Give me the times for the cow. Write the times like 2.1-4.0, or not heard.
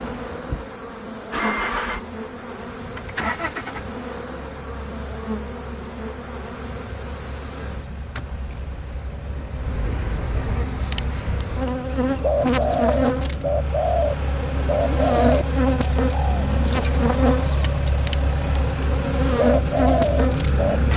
not heard.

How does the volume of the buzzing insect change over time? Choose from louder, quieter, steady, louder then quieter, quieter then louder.
louder.